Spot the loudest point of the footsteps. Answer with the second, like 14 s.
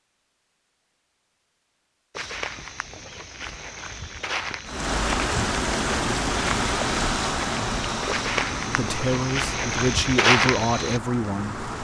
10 s.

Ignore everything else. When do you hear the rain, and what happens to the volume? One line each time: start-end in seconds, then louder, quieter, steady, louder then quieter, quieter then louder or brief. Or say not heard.
4.7-11.7 quieter.